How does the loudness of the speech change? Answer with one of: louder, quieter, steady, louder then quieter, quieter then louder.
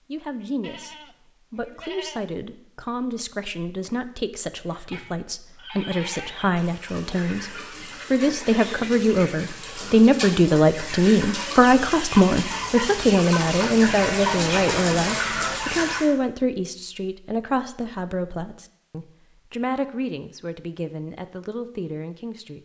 louder then quieter.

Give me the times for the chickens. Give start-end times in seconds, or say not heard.
4.7-16.1.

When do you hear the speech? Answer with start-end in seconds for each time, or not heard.
0.1-22.6.